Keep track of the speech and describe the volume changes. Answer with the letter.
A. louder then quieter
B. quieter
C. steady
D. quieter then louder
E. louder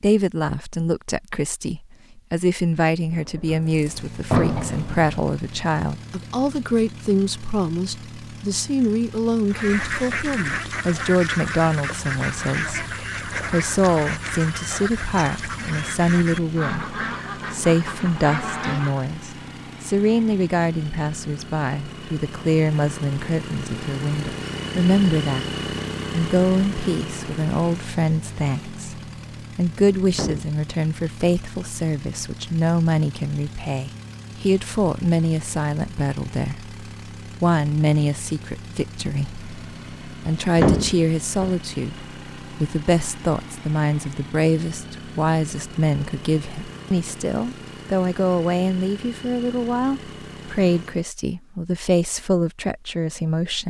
C.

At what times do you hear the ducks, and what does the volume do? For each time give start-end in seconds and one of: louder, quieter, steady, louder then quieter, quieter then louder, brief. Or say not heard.
9.4-19.1 steady.